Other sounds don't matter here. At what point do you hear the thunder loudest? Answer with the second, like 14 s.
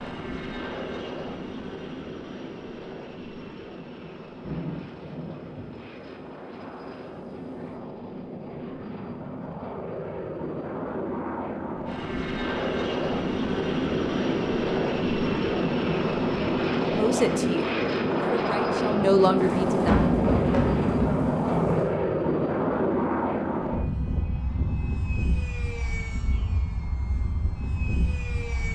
20 s.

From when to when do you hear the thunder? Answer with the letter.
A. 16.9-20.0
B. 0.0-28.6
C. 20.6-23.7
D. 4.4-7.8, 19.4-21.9
D.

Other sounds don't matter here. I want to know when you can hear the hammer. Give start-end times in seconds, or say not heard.
not heard.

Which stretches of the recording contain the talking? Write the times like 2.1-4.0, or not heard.
16.9-20.0.